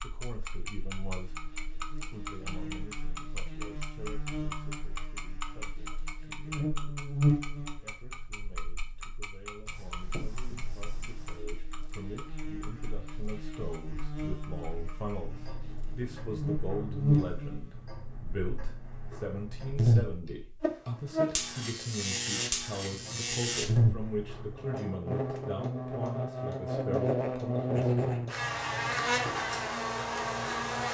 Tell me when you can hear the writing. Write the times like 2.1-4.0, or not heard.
9.7-11.4.